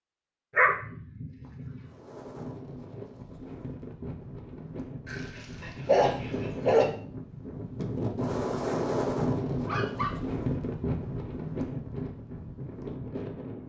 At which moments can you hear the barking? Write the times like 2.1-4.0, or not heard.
0.6-1.9, 5.0-6.8, 9.7-10.3.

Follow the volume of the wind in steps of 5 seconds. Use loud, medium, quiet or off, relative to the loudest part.
medium, loud, loud.